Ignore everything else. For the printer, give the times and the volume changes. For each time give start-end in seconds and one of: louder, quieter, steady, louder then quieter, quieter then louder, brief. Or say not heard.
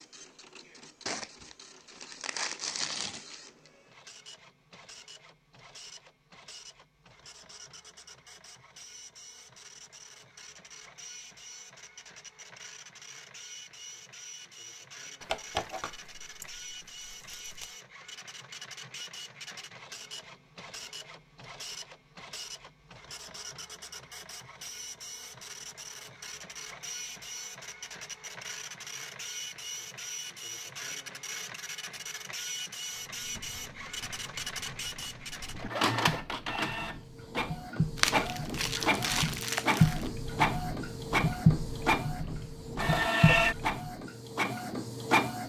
0.0-45.4 louder.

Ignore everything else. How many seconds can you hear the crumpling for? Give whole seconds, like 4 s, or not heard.
7 s.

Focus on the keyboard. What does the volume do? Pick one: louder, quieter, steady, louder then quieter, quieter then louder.
louder.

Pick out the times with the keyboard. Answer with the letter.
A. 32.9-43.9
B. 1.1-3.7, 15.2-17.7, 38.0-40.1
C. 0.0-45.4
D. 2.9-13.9
A.